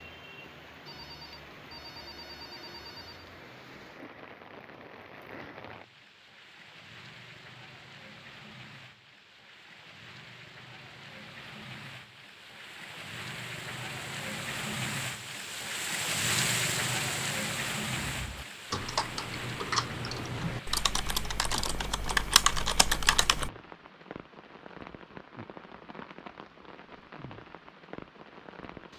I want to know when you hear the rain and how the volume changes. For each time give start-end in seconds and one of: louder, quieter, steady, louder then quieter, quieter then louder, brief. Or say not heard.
0.0-28.9 louder then quieter.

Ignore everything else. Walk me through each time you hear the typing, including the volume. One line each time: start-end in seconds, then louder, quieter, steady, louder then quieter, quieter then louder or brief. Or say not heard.
17.9-23.5 louder.